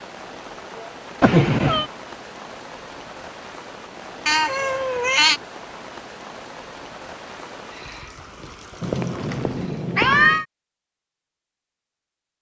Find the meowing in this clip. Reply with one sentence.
You can hear the meowing from 1.2 to 1.9 s, from 4.2 to 5.4 s and from 8.8 to 10.4 s.